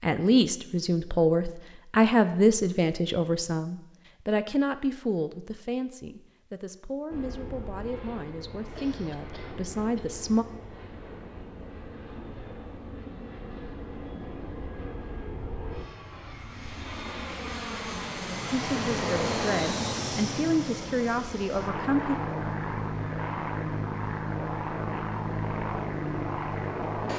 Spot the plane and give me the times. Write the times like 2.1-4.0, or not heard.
7.1-27.1.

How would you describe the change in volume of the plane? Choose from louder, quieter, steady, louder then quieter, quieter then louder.
louder.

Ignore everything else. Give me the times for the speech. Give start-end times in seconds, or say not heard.
0.0-10.4, 18.5-22.1.